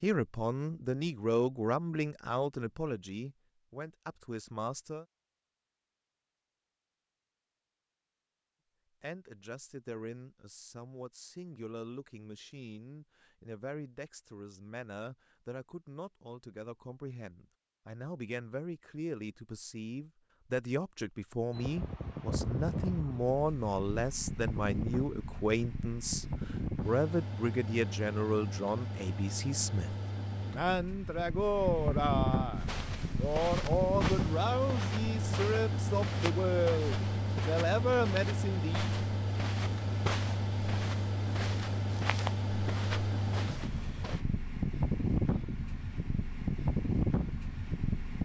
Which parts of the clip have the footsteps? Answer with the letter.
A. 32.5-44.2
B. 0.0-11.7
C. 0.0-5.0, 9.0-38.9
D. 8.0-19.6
A.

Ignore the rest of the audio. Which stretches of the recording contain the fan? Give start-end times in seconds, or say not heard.
21.5-48.1.